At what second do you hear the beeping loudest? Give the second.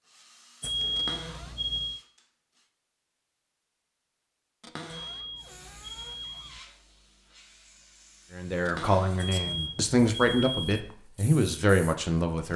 1 s.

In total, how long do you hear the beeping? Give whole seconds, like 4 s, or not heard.
5 s.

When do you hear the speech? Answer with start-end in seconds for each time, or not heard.
8.3-12.5.